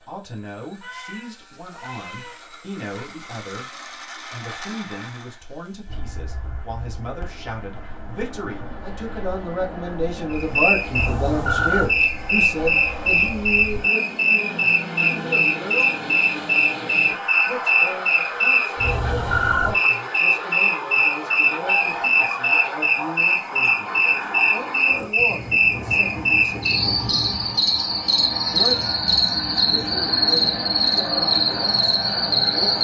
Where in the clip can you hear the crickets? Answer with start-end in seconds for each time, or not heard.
10.3-32.7.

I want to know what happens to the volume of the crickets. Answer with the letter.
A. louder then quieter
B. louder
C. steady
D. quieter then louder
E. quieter
C.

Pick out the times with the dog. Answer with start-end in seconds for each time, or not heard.
not heard.